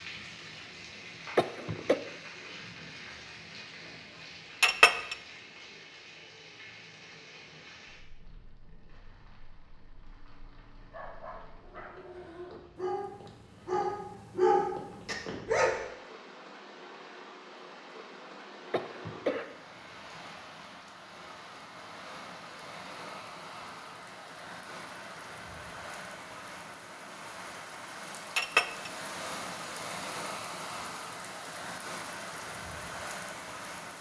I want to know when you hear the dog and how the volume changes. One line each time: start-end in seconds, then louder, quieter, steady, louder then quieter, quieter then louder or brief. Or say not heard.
10.8-15.8 louder.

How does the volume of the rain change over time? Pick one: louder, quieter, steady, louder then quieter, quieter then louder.
quieter then louder.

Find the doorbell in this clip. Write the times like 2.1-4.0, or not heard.
not heard.